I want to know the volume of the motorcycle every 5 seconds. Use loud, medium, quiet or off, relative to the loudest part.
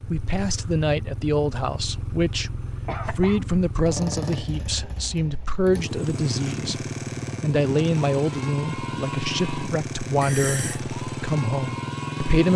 medium, loud, loud.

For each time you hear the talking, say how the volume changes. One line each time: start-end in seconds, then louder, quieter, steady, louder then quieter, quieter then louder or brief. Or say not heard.
0.0-12.5 steady.